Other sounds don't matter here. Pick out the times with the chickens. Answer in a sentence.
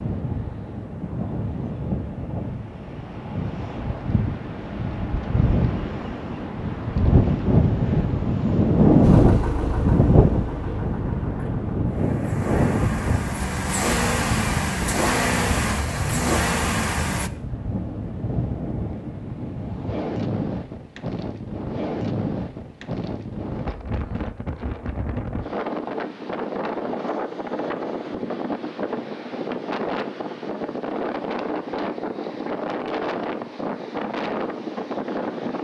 The chickens can't be heard in this clip.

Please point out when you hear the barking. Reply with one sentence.
You can't hear the barking here.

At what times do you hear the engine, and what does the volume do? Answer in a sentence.
You can hear the engine from 9.0 to 17.3 s, getting quieter then louder.